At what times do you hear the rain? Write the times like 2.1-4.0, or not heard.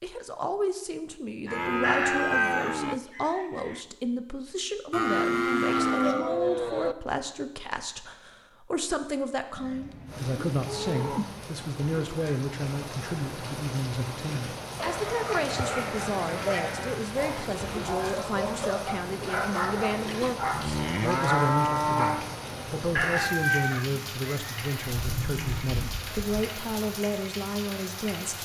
10.1-28.4.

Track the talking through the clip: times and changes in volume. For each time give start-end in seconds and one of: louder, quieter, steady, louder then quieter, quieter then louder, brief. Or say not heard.
0.0-28.4 steady.